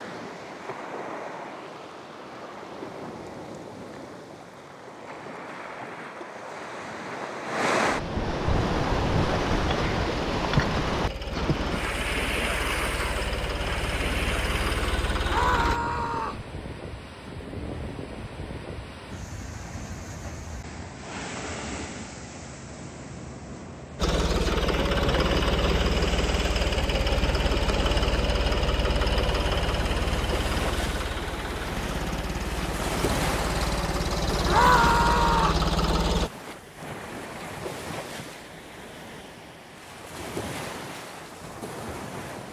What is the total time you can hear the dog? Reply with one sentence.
The dog can't be heard in this clip.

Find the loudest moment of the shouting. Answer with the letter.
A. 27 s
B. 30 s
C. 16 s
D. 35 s
D.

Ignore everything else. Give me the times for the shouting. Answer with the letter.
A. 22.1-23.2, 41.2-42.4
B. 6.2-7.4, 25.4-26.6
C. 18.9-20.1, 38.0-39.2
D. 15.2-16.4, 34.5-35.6
D.